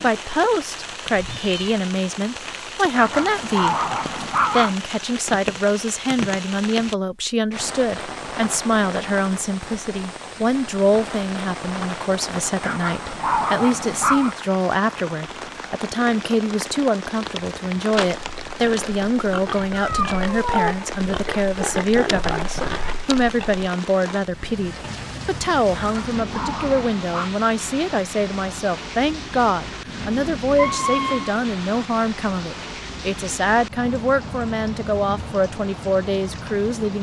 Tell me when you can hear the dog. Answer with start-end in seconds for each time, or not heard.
2.9-4.8, 12.6-14.3, 25.7-27.3.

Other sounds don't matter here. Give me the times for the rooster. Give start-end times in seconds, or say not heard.
not heard.